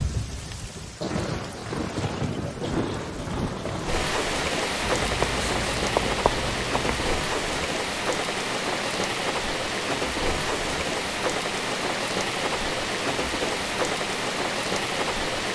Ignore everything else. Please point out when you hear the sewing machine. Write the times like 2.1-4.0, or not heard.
not heard.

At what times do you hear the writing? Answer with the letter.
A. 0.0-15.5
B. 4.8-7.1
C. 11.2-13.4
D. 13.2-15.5
B.